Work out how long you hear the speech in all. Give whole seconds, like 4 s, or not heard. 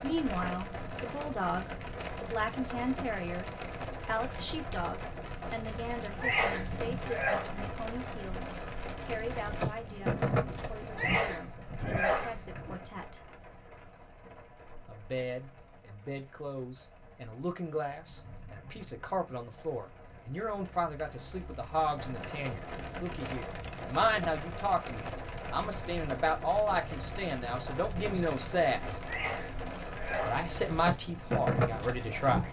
30 s.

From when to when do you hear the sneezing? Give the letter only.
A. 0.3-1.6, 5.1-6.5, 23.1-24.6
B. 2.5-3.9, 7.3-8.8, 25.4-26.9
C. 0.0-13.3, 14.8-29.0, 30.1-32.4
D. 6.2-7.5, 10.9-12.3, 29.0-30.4
D.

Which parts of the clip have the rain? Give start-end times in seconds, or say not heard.
0.0-32.4.